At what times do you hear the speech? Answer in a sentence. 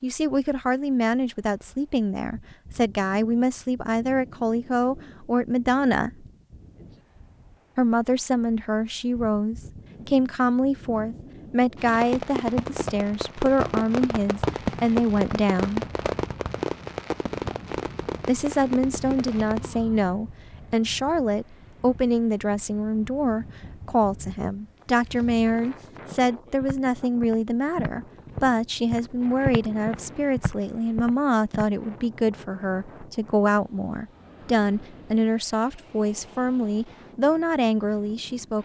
You can hear the speech from 0.0 to 6.2 s, from 7.8 to 15.8 s and from 18.2 to 38.6 s.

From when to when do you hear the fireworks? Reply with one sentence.
The fireworks can be heard from 11.8 to 19.8 s.